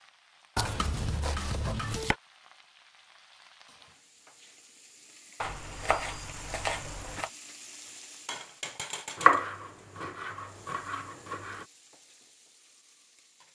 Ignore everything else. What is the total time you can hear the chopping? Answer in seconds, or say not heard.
6 s.